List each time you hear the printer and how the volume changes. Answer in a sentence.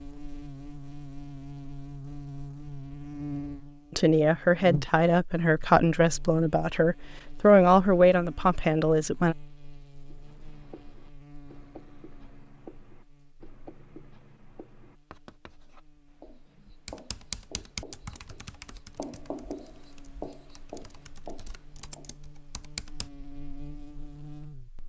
The printer can't be heard in this clip.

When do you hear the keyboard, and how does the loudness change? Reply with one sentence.
You can hear the keyboard from 16.9 to 23.1 s, getting quieter then louder.